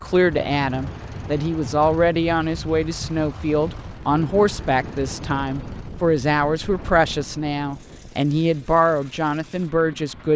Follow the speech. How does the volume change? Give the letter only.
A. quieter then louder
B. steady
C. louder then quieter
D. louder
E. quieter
B.